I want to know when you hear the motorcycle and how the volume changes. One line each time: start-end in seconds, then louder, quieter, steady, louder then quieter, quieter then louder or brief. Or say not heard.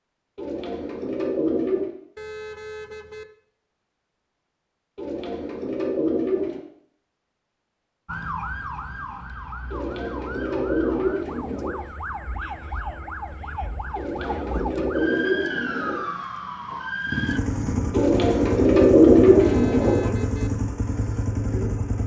17.1-22.0 steady.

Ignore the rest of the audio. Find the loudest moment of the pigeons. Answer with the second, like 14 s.
19 s.